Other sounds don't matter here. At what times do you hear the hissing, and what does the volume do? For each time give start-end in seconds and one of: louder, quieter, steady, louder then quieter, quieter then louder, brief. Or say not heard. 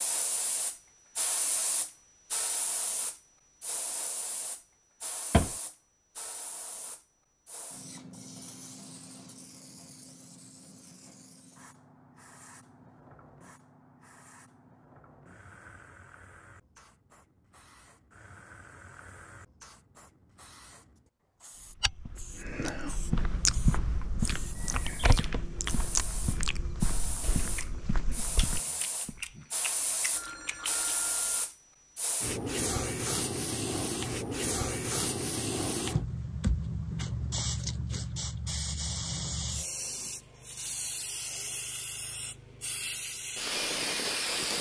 0.0-44.5 quieter then louder.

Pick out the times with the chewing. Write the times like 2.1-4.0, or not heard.
22.4-30.9.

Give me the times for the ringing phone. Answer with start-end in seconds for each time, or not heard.
30.1-31.4.